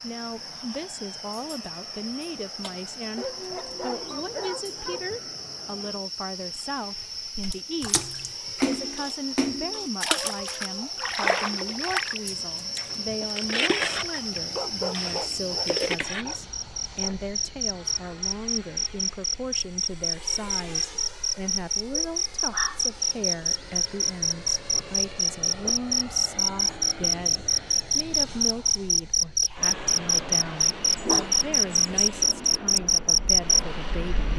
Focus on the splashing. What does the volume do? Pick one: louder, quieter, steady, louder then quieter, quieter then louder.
steady.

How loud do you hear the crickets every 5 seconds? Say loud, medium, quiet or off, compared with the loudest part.
quiet, quiet, medium, medium, medium, loud, loud.